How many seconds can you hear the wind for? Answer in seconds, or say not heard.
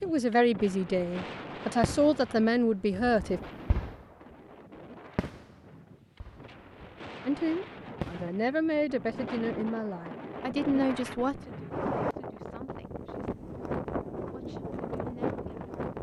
16 s.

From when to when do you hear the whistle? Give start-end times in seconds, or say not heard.
not heard.